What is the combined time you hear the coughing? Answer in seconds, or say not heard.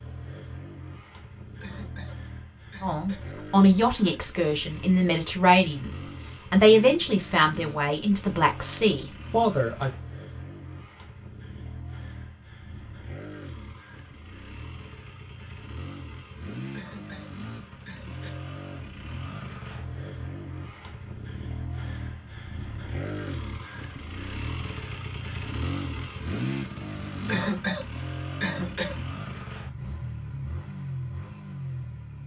5 s.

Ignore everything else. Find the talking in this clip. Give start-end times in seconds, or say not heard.
2.8-9.9.